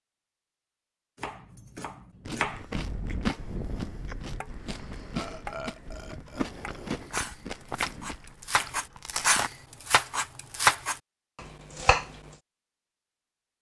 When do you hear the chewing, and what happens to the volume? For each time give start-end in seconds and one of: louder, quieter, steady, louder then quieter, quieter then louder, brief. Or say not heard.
2.2-9.5 quieter.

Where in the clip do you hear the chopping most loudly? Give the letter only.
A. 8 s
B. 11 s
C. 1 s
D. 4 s
B.